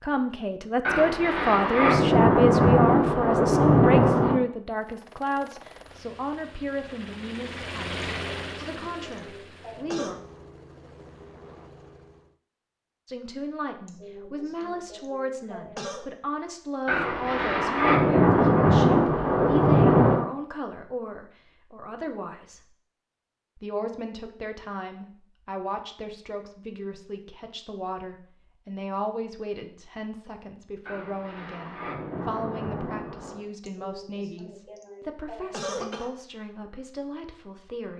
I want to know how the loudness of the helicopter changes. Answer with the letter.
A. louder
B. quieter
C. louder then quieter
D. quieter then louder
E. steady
C.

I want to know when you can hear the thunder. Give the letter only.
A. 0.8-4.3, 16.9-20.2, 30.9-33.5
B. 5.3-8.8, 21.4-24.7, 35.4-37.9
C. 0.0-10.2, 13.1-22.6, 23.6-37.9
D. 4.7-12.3
A.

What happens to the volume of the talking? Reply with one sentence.
The loudness of the talking goes down.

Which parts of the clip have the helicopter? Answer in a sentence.
You can hear the helicopter from 4.7 to 12.3 s.